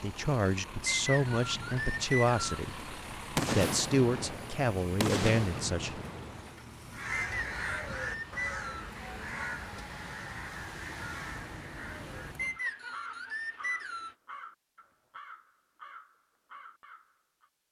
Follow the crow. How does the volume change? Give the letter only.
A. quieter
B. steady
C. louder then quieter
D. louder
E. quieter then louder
A.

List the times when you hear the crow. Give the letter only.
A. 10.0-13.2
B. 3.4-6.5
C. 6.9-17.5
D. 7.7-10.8
C.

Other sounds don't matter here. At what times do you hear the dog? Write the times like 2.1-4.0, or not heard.
not heard.